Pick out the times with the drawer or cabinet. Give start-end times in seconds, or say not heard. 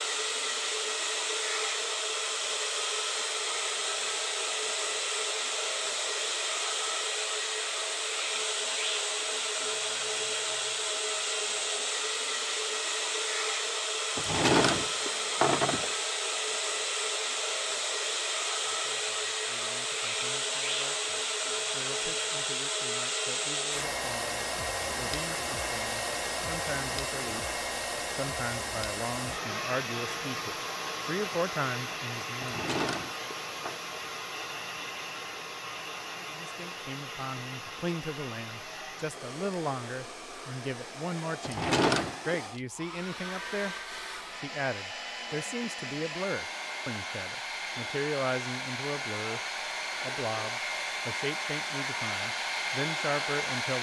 14.2-15.9, 32.4-33.8, 41.4-42.4.